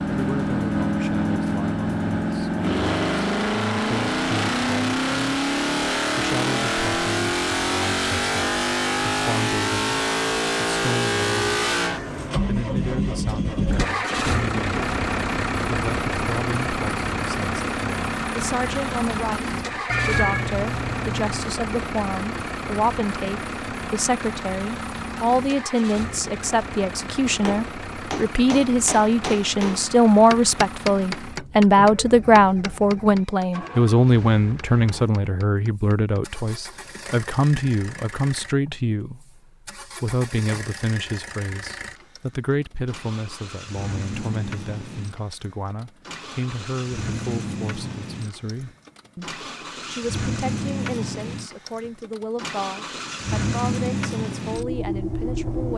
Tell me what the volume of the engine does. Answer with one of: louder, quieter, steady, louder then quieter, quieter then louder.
quieter then louder.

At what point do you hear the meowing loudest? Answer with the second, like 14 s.
20 s.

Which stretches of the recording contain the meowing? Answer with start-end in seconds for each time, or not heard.
19.9-21.4.